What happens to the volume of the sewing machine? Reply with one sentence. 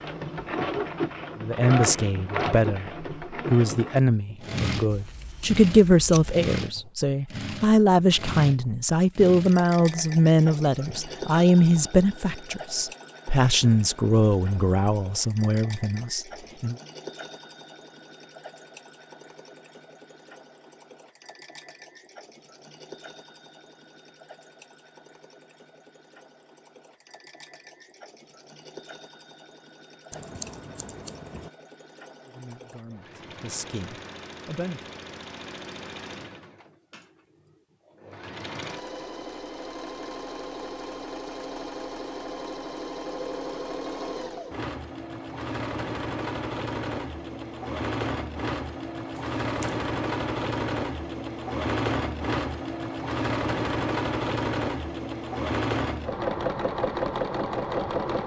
The loudness of the sewing machine goes down, then up.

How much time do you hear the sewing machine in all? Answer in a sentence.
The sewing machine can be heard for 58 seconds in total.